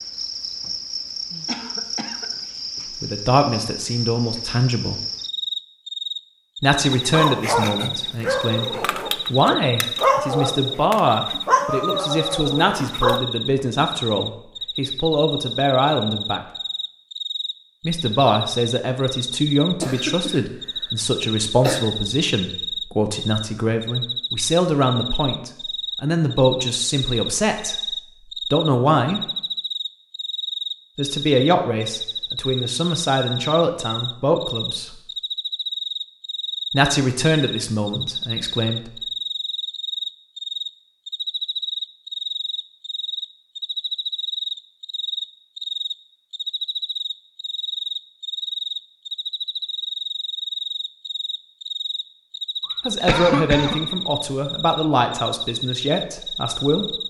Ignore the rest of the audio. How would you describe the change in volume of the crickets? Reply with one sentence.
The loudness of the crickets stays about the same.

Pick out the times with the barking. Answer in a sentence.
You can hear the barking from 6.7 to 13.2 s.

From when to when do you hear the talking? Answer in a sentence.
The talking can be heard from 3.0 to 5.0 s, from 6.6 to 16.4 s, from 17.9 to 29.2 s, from 30.9 to 35.0 s, from 36.7 to 38.9 s and from 52.9 to 56.9 s.